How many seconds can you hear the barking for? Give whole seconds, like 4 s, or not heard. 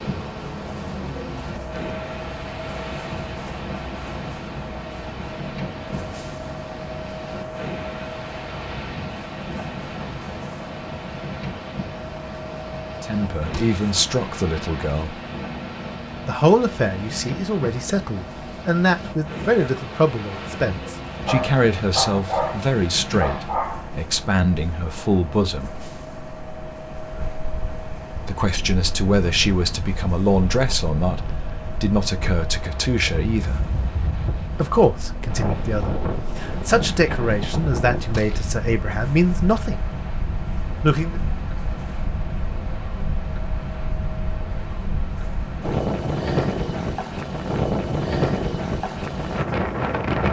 3 s.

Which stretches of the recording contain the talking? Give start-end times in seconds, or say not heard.
13.0-15.2, 16.2-25.8, 28.2-33.6, 34.5-39.9, 40.8-41.2.